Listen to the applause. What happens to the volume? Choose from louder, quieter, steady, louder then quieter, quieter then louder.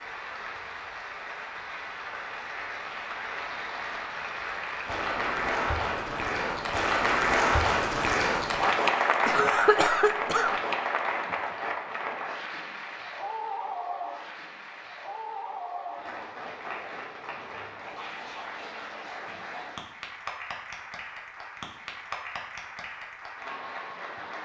louder then quieter.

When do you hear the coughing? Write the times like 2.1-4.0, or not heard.
9.2-10.6.